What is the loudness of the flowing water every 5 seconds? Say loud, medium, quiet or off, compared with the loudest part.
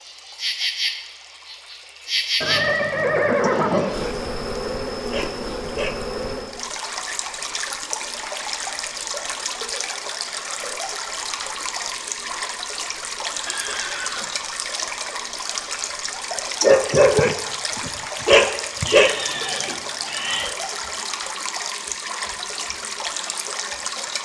quiet, loud, loud, loud, loud.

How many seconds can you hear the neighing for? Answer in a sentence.
The neighing can be heard for 4 seconds in total.